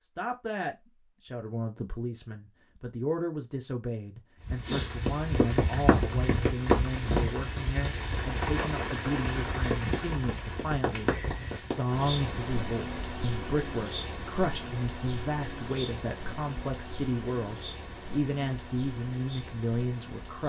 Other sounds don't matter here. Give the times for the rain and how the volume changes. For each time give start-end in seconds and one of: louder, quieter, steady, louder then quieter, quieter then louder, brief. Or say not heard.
4.5-20.4 quieter.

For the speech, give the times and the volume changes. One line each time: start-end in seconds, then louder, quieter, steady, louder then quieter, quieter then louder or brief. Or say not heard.
0.0-20.4 steady.